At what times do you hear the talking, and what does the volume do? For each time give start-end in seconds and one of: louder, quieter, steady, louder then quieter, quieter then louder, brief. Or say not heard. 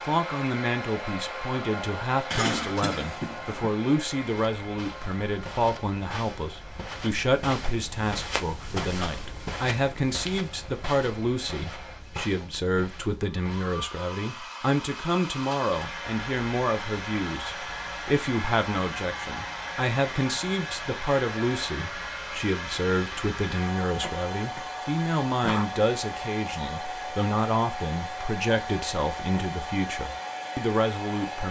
0.1-31.4 steady.